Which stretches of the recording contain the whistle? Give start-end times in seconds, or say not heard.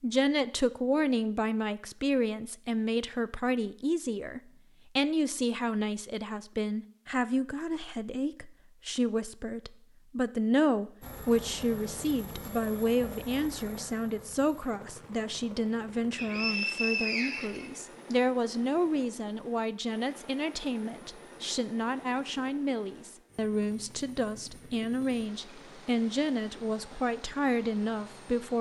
16.1-18.1.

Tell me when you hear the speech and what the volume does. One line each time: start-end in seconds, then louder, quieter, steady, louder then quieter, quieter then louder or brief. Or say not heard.
0.0-28.5 steady.